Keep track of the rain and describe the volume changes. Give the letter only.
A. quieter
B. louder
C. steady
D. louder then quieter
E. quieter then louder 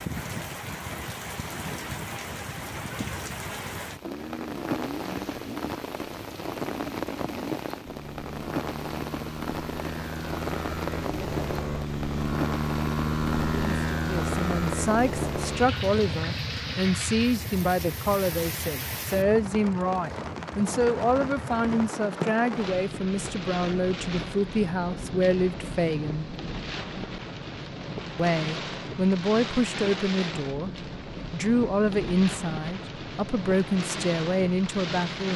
C.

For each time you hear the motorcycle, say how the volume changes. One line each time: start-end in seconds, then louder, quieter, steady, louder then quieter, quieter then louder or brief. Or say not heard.
4.0-21.9 louder then quieter.